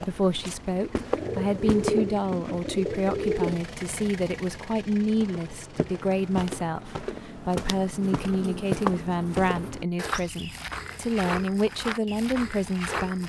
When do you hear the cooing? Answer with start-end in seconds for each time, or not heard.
1.0-3.6, 8.1-9.8.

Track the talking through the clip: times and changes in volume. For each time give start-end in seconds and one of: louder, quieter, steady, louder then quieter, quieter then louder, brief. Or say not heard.
0.0-13.2 steady.